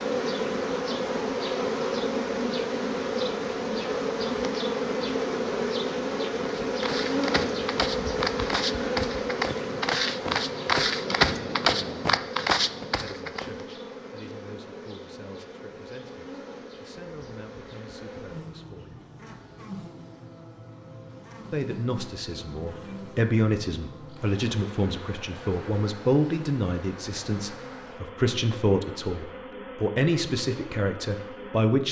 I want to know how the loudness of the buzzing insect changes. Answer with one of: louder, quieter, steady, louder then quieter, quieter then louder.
quieter.